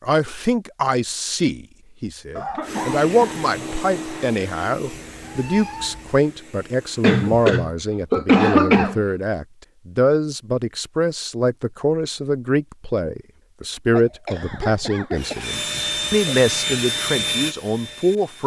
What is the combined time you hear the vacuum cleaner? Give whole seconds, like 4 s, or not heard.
8 s.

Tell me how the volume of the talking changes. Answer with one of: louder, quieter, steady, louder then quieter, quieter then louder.
steady.